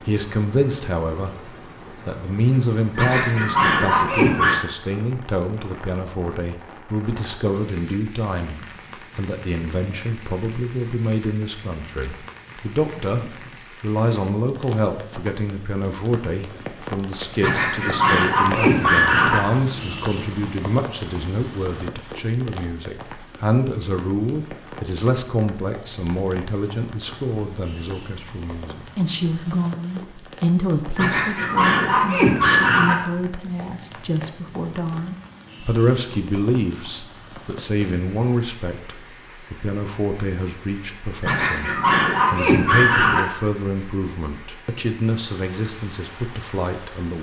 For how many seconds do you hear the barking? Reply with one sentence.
You can hear the barking for 8 seconds altogether.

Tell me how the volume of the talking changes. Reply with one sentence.
The loudness of the talking stays about the same.